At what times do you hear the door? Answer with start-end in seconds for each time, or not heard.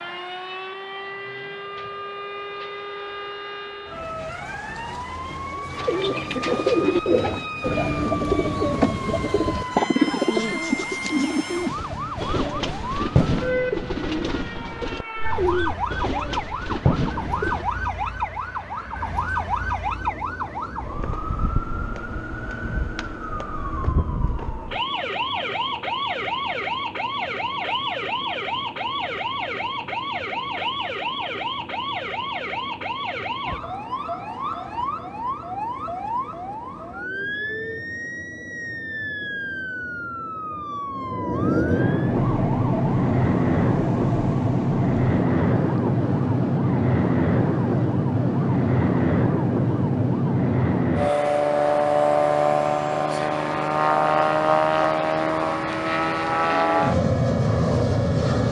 not heard.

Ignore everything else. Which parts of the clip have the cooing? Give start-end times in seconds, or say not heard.
5.8-17.6.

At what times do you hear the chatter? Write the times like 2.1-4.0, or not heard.
not heard.